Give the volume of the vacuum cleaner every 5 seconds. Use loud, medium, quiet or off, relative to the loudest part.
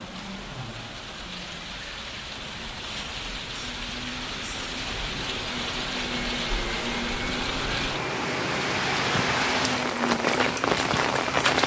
quiet, loud, loud.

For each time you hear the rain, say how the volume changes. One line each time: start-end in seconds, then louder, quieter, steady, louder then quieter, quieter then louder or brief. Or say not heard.
0.0-11.6 louder.